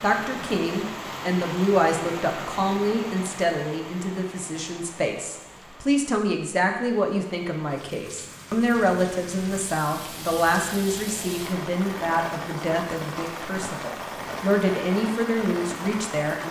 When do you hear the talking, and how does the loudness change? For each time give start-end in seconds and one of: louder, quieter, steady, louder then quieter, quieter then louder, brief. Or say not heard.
0.0-16.4 steady.